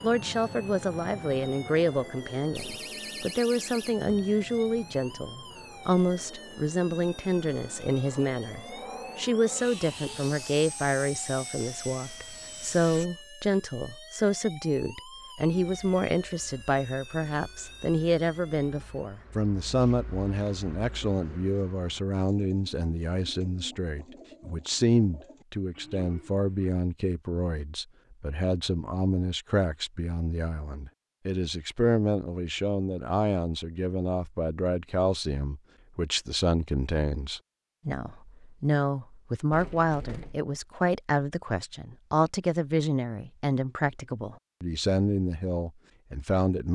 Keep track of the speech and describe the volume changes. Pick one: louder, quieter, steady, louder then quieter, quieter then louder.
steady.